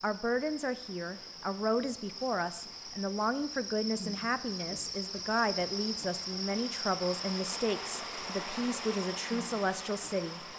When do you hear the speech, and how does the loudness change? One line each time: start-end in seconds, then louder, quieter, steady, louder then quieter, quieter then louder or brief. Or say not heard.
0.0-10.4 steady.